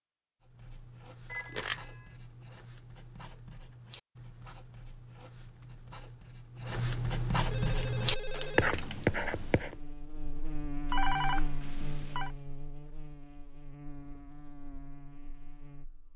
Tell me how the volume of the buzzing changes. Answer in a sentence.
The volume of the buzzing goes up, then down.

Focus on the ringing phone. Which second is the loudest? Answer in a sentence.
The volume of the ringing phone peaks at 11 seconds.